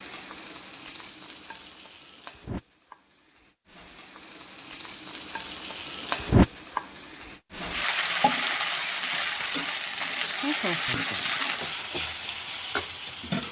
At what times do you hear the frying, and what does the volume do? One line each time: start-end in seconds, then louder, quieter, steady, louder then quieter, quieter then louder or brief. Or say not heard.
0.0-13.4 louder.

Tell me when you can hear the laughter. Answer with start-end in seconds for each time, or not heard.
10.4-11.7.